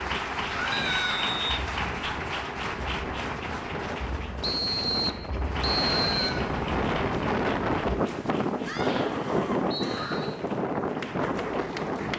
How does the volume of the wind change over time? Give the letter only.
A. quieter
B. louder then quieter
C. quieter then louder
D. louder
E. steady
D.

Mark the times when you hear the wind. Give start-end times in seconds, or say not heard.
0.0-12.1.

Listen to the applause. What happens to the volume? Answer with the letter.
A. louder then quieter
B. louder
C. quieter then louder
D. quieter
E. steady
D.